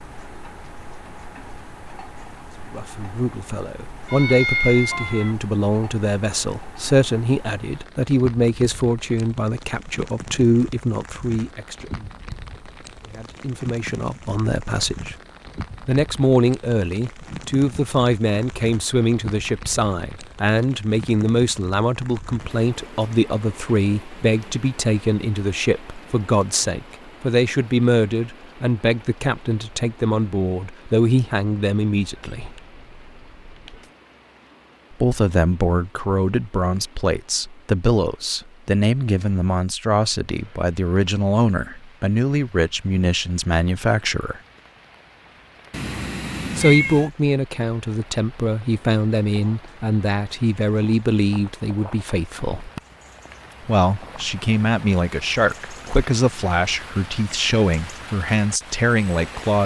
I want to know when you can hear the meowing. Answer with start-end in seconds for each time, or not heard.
4.0-5.3, 32.0-33.9, 45.7-47.1.